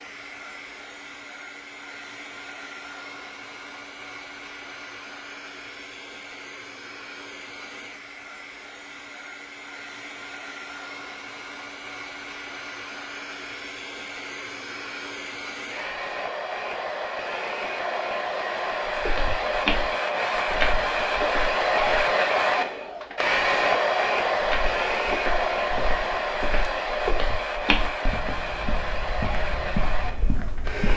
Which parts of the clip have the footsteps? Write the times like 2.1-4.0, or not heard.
18.9-22.1, 24.4-30.9.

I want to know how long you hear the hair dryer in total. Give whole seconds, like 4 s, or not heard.
31 s.